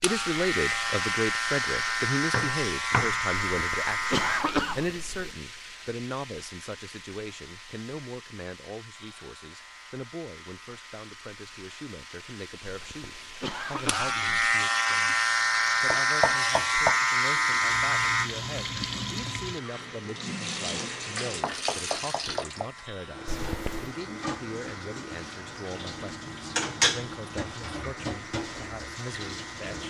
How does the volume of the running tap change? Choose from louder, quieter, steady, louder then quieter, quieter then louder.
quieter then louder.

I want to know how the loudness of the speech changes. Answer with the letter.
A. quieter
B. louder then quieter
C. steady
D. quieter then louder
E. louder
A.